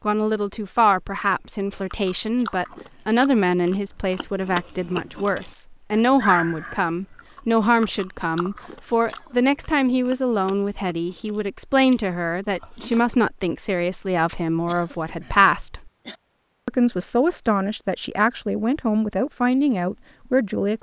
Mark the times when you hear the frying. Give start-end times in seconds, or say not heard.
not heard.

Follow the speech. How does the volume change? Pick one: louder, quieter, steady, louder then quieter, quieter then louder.
steady.